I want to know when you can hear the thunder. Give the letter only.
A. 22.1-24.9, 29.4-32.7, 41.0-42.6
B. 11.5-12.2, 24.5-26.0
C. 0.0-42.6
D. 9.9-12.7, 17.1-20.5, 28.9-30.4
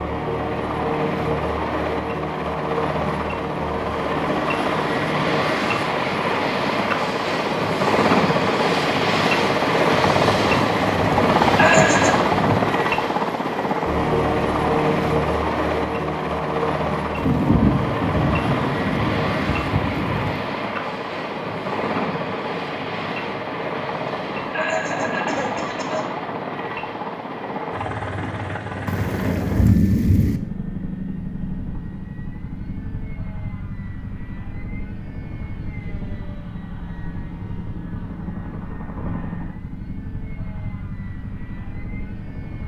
D.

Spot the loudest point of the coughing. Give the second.
12 s.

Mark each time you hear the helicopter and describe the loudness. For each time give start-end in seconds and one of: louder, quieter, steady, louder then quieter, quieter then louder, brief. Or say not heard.
0.0-42.6 quieter.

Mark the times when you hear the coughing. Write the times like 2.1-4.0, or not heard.
11.5-12.2, 24.5-26.0.